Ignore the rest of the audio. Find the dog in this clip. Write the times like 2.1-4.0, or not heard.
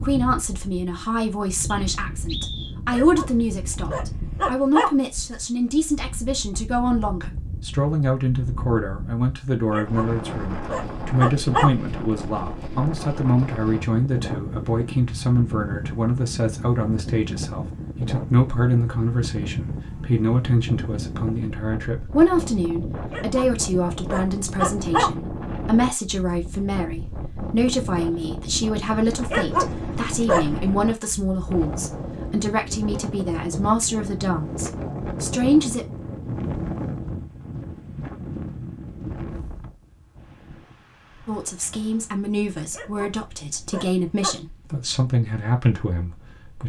2.9-4.9, 9.7-11.7, 23.1-25.1, 29.2-30.7, 42.7-44.4.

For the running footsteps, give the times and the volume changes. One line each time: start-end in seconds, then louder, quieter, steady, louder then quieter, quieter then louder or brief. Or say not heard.
not heard.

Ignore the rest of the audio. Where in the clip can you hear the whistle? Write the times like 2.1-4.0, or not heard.
1.6-2.8.